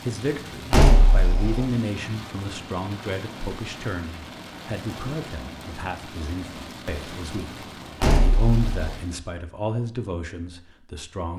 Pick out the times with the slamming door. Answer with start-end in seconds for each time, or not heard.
0.7-1.6, 8.0-8.9.